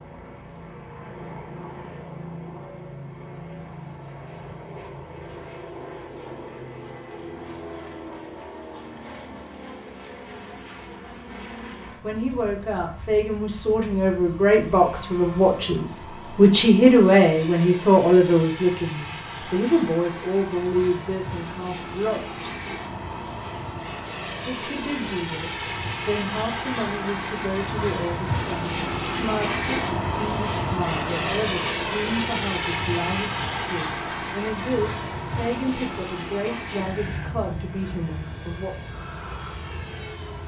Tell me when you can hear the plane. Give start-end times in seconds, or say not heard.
0.0-40.4.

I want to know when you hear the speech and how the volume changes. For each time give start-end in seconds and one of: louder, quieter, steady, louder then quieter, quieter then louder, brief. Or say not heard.
12.0-22.8 louder then quieter
24.4-38.8 steady.